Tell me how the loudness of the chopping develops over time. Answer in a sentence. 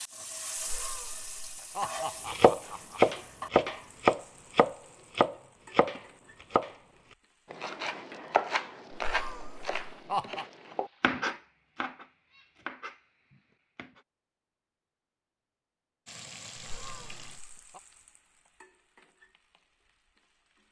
The volume of the chopping goes down.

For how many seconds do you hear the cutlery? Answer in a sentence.
The cutlery can't be heard in this clip.